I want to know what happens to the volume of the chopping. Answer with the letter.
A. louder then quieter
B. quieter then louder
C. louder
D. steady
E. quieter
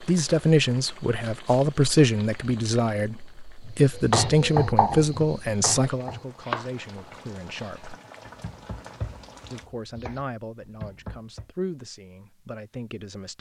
E.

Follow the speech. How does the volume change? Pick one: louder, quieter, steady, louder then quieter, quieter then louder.
quieter.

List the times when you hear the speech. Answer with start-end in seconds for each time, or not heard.
0.0-8.0, 9.5-13.3.